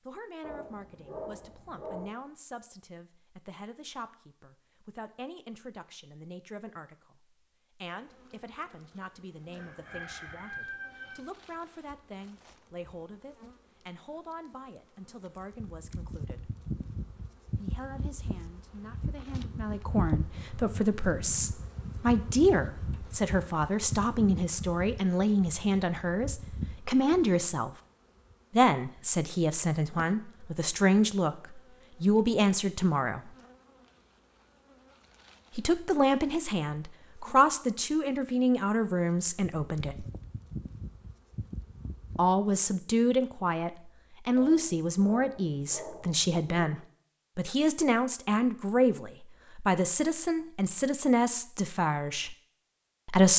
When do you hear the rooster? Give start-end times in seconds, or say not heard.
9.5-11.2.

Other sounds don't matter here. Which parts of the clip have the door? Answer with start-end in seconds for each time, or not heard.
not heard.